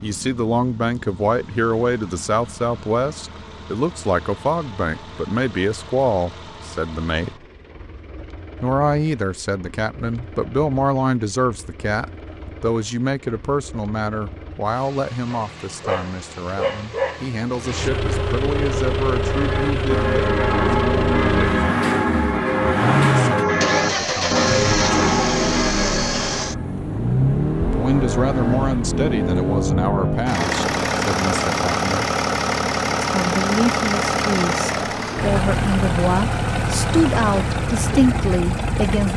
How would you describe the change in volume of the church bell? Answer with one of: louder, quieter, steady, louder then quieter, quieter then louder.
steady.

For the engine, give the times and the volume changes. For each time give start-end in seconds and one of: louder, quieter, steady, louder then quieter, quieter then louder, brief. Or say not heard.
0.0-39.1 louder.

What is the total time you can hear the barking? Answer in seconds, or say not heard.
2 s.